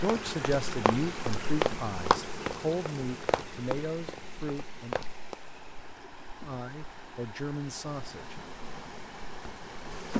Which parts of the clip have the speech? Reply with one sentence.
The speech can be heard from 0.0 to 5.0 s and from 6.4 to 8.4 s.